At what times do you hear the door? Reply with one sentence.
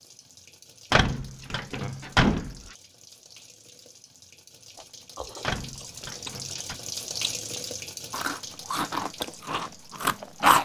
You can hear the door from 0.9 to 2.5 s and from 5.4 to 6.8 s.